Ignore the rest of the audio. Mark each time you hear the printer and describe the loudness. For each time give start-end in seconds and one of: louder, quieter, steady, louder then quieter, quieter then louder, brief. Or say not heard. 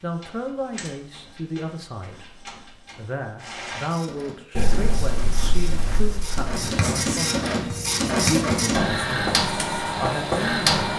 0.0-10.9 louder.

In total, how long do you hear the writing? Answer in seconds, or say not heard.
6 s.